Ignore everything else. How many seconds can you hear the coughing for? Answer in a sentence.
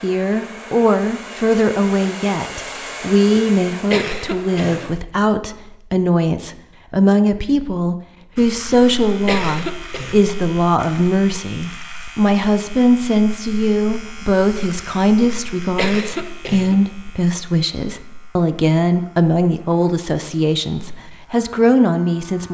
You can hear the coughing for 5 seconds altogether.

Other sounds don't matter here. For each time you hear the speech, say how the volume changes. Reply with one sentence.
You can hear the speech from 0.0 to 22.4 s, at a steady volume.